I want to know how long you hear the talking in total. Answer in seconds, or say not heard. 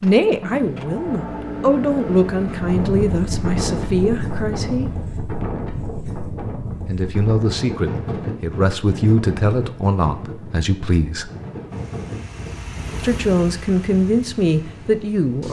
12 s.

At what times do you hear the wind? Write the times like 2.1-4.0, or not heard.
2.5-15.4.